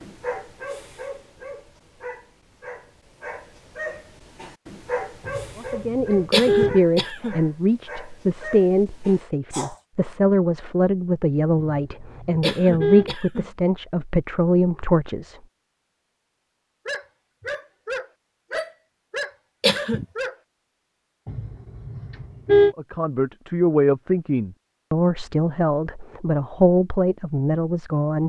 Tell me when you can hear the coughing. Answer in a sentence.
You can hear the coughing from 6.3 to 7.3 s, from 12.4 to 13.4 s and from 19.6 to 20.1 s.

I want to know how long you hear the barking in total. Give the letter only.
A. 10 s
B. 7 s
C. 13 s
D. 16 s
C.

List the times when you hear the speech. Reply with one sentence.
You can hear the speech from 5.5 to 15.4 s and from 22.6 to 28.2 s.